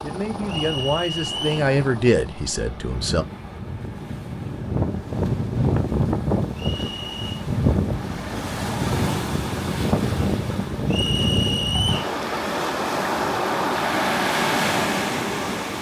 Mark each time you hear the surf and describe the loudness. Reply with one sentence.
The surf can be heard from 0.0 to 15.7 s, getting louder.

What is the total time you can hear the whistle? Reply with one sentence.
You can hear the whistle for 3 seconds altogether.